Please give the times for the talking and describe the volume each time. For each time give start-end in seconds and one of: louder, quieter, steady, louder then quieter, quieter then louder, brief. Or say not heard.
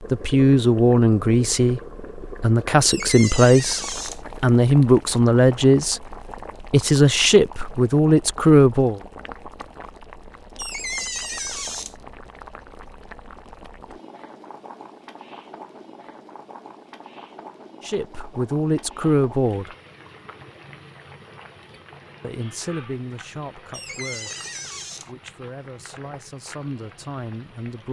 0.1-9.0 steady
17.8-19.7 brief
22.2-27.8 quieter then louder.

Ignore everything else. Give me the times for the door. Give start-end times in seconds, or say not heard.
2.8-4.2, 10.6-11.9, 23.7-25.1.